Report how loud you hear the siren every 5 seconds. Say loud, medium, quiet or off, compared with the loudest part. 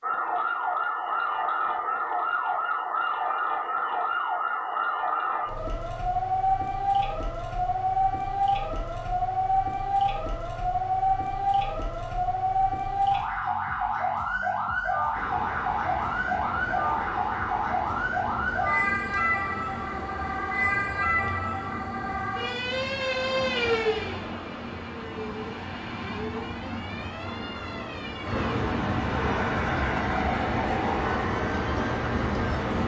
loud, loud, loud, loud, loud, quiet, off.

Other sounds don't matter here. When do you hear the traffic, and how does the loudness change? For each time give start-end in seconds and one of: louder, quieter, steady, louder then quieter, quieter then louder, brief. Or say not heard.
15.1-32.8 louder.